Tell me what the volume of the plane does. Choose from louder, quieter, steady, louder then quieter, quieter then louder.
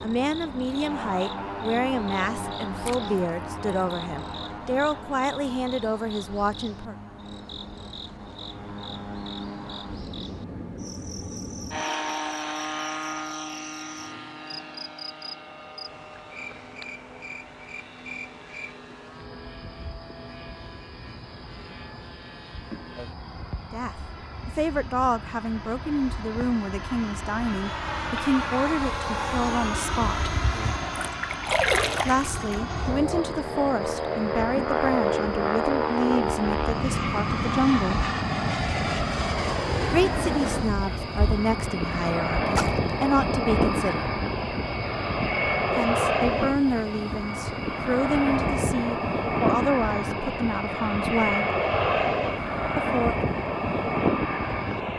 louder.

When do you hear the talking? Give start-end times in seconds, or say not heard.
0.0-7.0, 23.7-30.4, 32.0-38.0, 39.9-44.0, 45.7-51.5, 52.8-53.3.